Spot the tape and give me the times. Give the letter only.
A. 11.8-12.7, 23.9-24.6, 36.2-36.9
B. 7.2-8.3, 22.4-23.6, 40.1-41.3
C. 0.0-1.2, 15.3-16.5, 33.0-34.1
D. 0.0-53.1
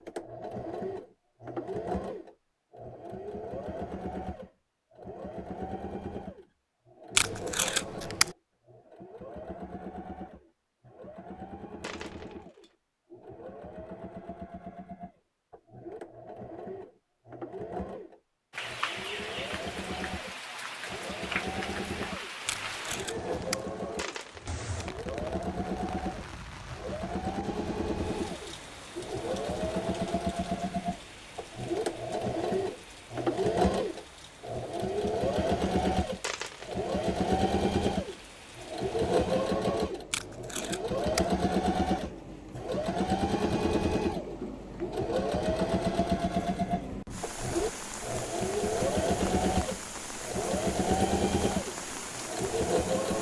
B.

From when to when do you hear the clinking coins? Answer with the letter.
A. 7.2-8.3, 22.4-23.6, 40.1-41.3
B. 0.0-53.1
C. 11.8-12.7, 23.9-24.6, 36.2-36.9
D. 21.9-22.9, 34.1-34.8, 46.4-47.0
C.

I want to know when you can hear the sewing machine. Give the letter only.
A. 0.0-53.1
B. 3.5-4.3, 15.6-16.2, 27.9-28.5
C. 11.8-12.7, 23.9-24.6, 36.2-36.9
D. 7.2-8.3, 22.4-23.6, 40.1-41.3
A.